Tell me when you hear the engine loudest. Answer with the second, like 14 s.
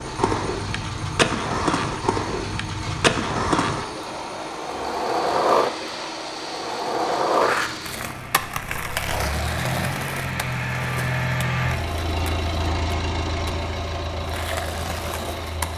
11 s.